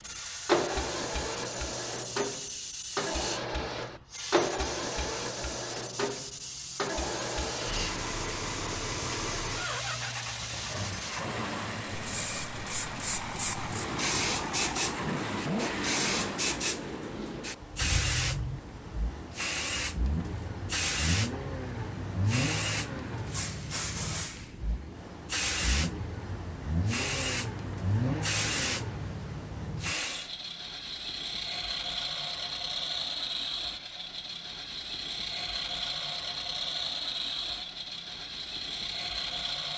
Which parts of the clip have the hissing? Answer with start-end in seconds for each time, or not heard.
0.0-30.3.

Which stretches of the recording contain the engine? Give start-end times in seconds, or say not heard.
0.0-39.7.